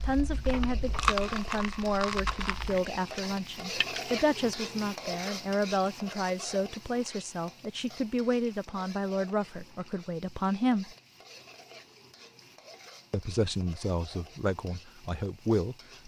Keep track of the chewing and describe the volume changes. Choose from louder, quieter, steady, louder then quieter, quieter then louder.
louder then quieter.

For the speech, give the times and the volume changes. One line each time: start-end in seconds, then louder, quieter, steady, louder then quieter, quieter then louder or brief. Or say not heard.
0.0-10.9 steady
13.1-16.0 brief.